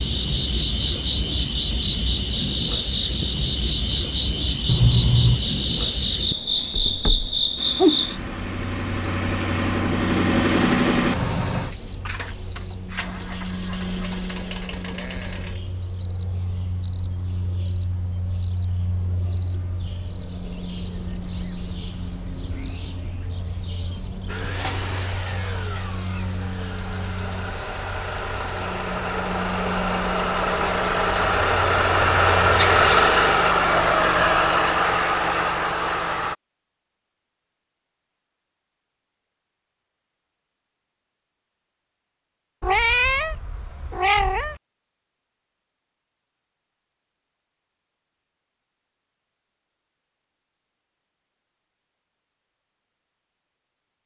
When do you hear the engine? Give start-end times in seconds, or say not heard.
7.5-15.7, 24.2-36.4.